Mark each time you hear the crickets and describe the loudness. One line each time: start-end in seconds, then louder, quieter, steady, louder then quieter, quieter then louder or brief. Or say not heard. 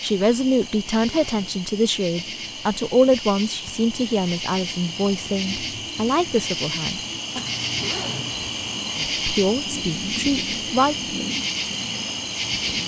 0.0-12.8 louder.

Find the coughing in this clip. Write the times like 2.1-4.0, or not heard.
not heard.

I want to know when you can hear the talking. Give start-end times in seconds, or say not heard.
0.0-7.4, 8.9-10.9.